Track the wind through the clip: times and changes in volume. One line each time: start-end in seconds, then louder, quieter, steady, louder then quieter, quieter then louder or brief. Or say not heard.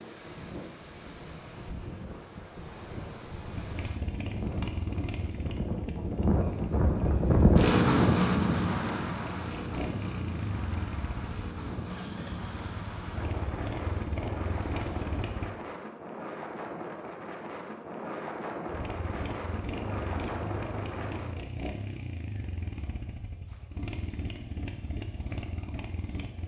0.0-21.4 louder then quieter.